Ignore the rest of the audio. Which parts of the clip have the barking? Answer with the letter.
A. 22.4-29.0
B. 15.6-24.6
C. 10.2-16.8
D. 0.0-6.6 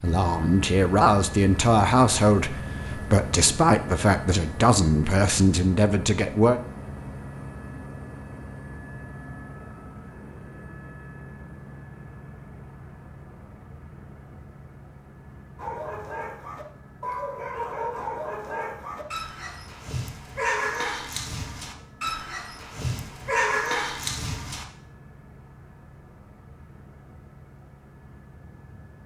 B.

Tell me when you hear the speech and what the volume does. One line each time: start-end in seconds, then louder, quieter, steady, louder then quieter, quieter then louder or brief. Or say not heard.
0.0-6.6 steady.